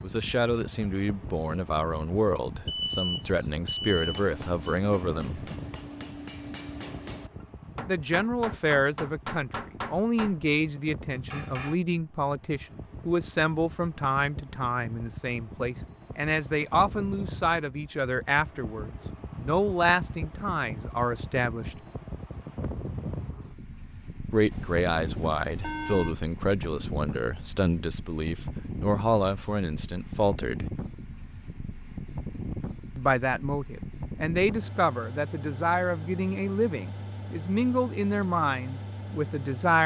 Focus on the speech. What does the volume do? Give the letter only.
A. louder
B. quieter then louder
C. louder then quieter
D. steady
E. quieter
D.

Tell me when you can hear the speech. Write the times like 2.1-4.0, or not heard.
0.0-5.5, 7.8-21.8, 24.3-30.7, 33.0-39.8.